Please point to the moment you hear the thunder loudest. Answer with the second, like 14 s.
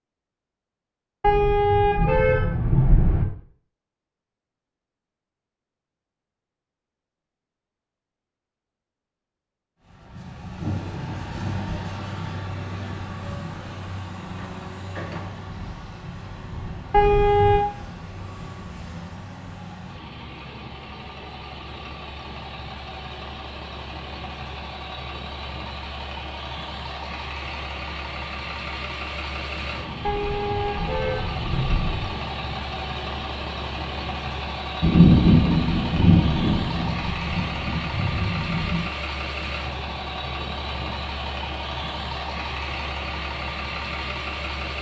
35 s.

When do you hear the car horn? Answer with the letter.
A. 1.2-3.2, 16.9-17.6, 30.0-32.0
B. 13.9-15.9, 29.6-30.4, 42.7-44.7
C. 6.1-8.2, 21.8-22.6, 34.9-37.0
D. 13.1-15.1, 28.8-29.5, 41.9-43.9
A.